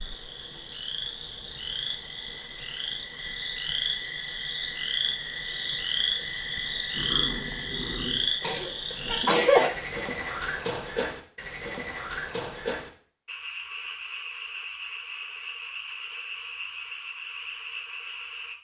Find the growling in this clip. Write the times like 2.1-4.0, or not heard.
6.9-8.3.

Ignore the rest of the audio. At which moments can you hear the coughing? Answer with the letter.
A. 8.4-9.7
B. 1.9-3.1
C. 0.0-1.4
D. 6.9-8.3
A.